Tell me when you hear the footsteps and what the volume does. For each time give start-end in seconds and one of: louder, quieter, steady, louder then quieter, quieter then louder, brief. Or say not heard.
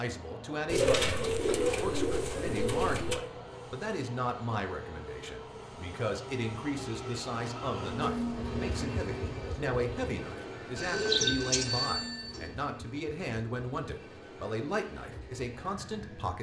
not heard.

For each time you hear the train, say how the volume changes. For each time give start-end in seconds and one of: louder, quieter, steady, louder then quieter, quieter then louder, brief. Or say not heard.
0.0-16.3 louder then quieter.